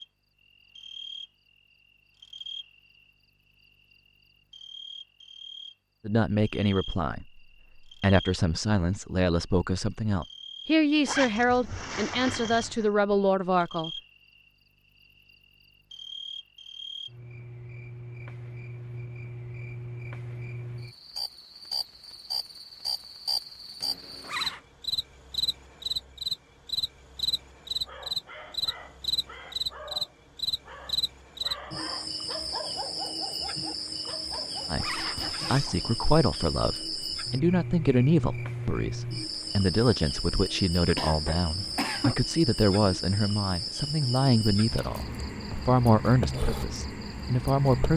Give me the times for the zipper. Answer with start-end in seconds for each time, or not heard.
11.1-12.9, 23.8-24.6, 34.3-35.8.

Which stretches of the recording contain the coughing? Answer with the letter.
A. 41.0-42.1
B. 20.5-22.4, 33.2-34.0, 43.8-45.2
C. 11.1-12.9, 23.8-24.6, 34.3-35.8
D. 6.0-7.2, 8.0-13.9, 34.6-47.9
A.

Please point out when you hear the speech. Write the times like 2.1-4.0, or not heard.
6.0-7.2, 8.0-13.9, 34.6-47.9.